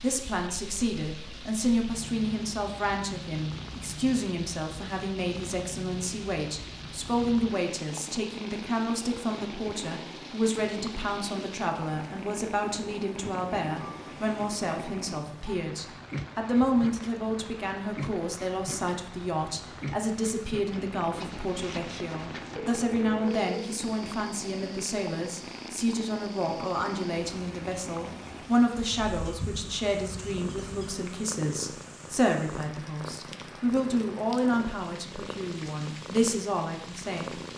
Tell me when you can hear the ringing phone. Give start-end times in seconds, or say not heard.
21.1-23.8.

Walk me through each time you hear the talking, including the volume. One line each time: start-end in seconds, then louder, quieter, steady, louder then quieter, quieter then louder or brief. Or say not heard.
0.0-37.4 steady.